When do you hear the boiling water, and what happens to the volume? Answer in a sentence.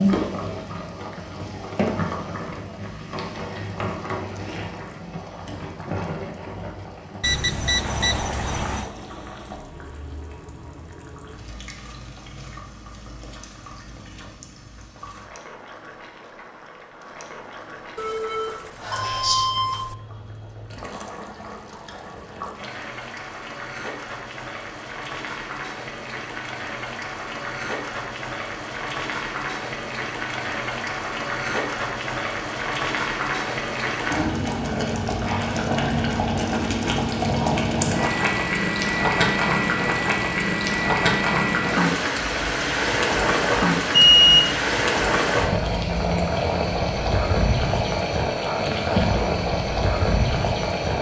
The boiling water can be heard from 0.0 to 50.9 s, getting quieter then louder.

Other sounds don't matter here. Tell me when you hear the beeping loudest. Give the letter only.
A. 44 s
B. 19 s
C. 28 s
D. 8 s
A.